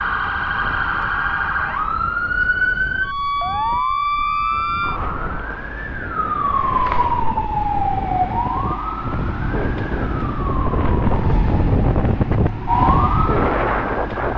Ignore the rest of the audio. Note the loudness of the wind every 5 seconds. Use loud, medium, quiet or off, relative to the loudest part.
quiet, medium, loud.